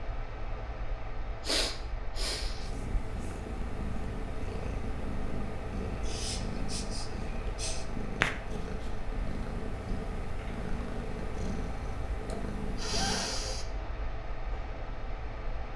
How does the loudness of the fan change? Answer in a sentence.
The loudness of the fan stays about the same.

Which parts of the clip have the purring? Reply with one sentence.
You can hear the purring from 2.4 to 13.4 s.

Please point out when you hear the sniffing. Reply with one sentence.
You can hear the sniffing from 1.4 to 2.7 s, from 6.0 to 7.8 s and from 12.2 to 13.7 s.